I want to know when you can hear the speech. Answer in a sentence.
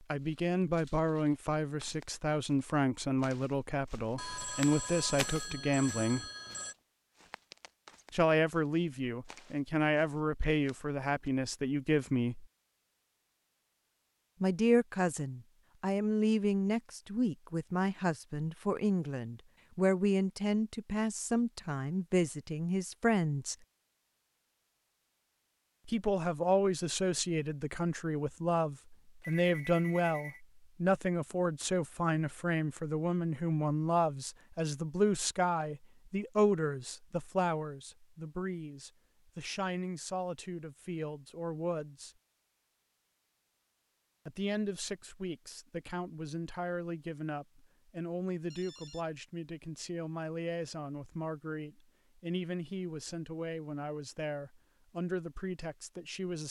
The speech can be heard from 0.1 to 6.2 s, from 8.1 to 12.4 s, from 14.4 to 23.6 s, from 25.9 to 42.1 s and from 44.2 to 56.4 s.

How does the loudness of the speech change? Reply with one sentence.
The volume of the speech goes down.